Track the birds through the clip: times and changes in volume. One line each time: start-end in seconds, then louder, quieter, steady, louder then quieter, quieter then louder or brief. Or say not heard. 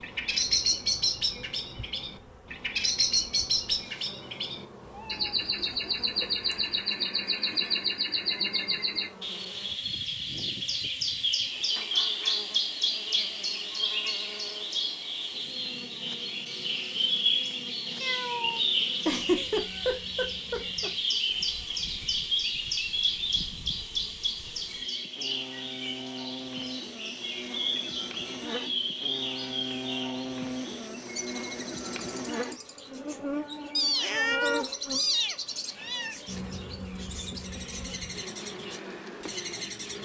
0.0-40.0 quieter.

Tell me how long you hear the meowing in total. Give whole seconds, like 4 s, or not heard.
5 s.